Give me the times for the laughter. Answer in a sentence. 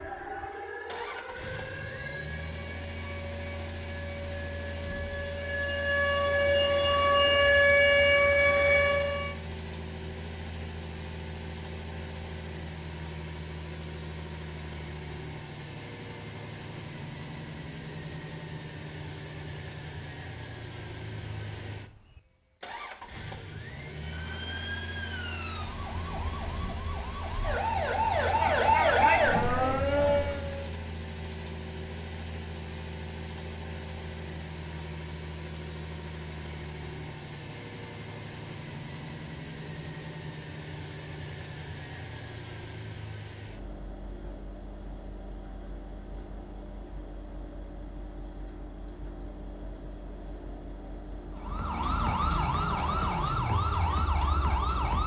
The laughter can't be heard in this clip.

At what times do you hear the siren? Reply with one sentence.
The siren can be heard from 0.0 to 9.3 s, from 23.9 to 30.7 s and from 51.4 to 55.0 s.